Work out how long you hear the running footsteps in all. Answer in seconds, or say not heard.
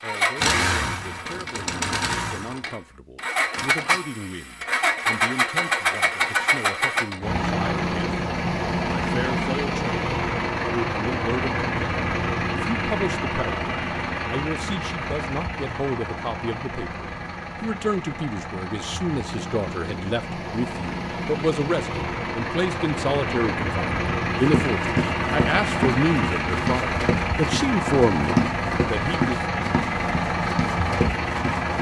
7 s.